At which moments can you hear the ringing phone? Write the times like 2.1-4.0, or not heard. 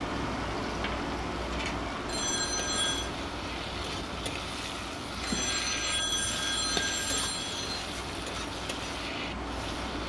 2.0-3.1, 5.2-7.8.